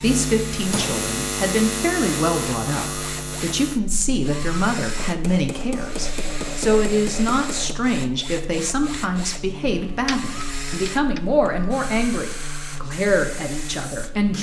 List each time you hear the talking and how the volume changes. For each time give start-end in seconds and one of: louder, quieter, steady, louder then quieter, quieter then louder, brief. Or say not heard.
0.0-14.3 steady.